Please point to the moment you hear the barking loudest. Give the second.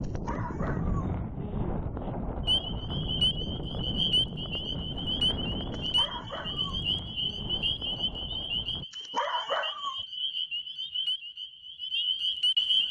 9 s.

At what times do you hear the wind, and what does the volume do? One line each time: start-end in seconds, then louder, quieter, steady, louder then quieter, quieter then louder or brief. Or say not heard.
0.0-8.8 quieter.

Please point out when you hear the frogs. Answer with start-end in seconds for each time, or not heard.
2.5-12.8.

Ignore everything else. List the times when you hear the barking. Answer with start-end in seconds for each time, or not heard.
0.0-1.1, 5.7-6.8, 8.9-10.1.